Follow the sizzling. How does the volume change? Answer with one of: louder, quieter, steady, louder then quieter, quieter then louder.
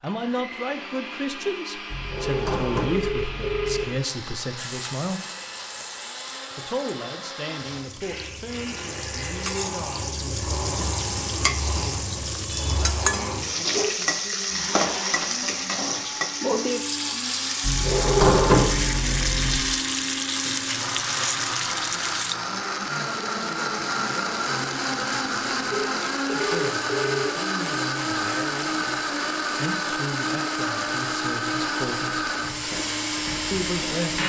louder.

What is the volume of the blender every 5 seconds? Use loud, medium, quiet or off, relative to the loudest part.
medium, medium, medium, medium, loud, loud, loud.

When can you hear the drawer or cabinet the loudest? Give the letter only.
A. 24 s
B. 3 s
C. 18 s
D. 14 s
C.